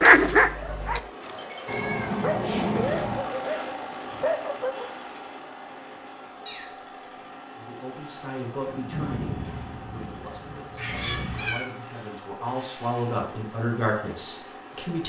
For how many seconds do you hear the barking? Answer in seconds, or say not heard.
5 s.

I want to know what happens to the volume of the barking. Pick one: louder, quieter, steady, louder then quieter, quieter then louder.
quieter then louder.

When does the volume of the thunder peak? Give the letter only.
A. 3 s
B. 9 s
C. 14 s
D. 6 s
B.